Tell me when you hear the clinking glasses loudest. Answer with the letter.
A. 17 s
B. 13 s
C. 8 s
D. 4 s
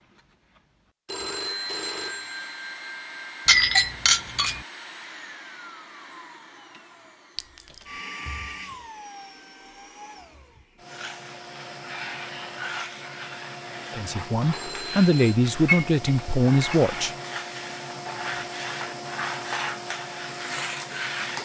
D.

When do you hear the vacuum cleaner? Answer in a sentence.
You can hear the vacuum cleaner from 0.0 to 21.4 s.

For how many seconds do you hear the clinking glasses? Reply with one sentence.
You can hear the clinking glasses for 3 seconds altogether.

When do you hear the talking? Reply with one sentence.
The talking can be heard from 13.9 to 17.1 s.